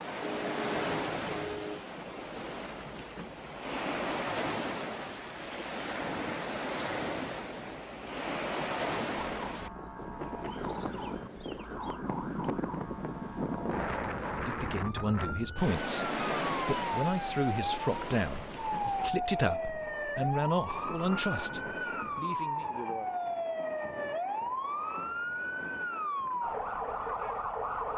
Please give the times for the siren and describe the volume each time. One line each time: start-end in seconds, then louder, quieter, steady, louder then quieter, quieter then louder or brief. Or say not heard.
9.2-27.9 louder.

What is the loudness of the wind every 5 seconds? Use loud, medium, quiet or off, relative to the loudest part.
loud, loud, loud, loud, off, off.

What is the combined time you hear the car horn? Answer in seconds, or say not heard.
2 s.